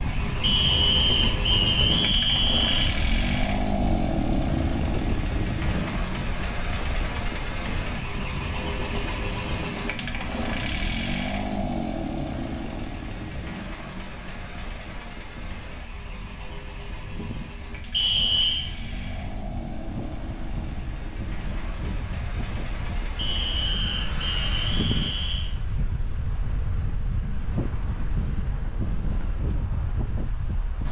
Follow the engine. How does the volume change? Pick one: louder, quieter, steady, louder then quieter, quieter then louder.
quieter.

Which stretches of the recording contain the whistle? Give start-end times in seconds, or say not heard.
0.4-3.0, 17.9-18.7, 23.1-25.5.